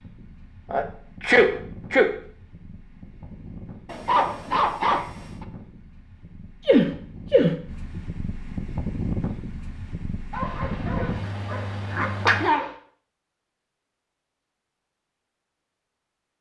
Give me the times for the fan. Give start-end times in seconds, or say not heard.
0.0-12.5.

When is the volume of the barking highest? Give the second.
5 s.